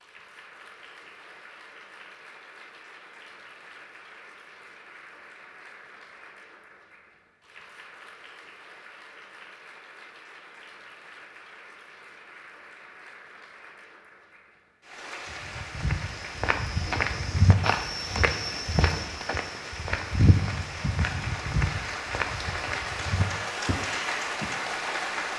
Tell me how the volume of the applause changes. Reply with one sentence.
The volume of the applause goes up.